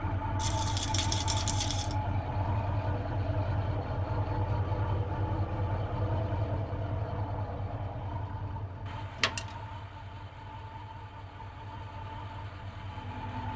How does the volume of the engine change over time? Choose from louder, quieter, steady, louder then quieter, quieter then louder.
quieter.